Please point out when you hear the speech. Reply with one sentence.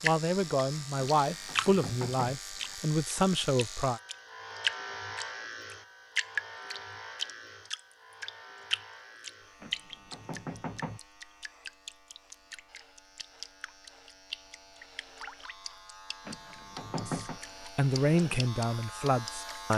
The speech can be heard from 0.0 to 4.0 s and from 17.0 to 19.7 s.